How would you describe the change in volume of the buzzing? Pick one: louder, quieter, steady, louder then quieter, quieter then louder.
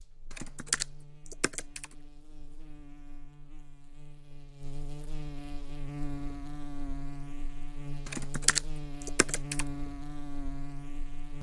louder.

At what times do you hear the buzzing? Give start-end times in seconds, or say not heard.
0.0-11.3.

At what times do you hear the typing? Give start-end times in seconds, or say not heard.
0.3-1.9, 8.1-9.7.